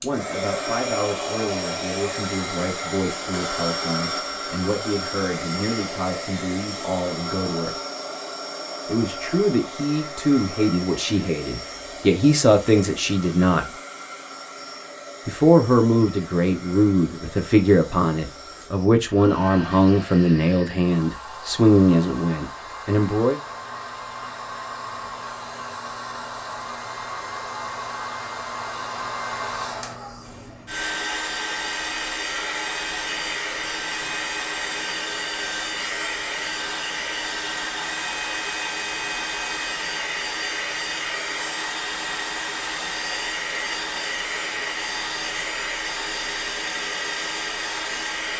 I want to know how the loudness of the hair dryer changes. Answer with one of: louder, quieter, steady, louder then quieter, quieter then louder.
quieter then louder.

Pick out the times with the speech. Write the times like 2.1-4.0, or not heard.
0.0-7.8, 8.8-13.7, 15.2-23.4.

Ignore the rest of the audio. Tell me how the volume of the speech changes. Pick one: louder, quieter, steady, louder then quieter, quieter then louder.
louder.